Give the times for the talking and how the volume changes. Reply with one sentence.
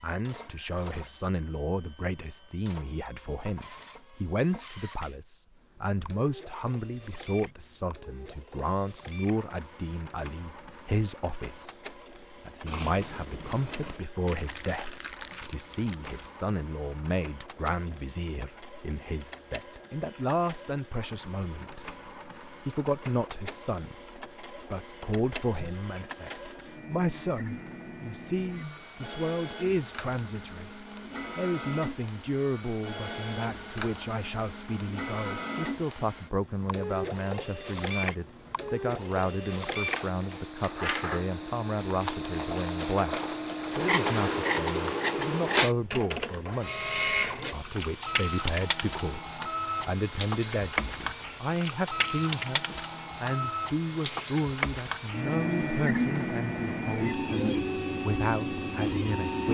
The talking can be heard from 0.0 to 59.4 s, at a steady volume.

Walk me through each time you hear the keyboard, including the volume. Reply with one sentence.
The keyboard can't be heard in this clip.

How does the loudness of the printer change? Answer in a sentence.
The loudness of the printer goes up.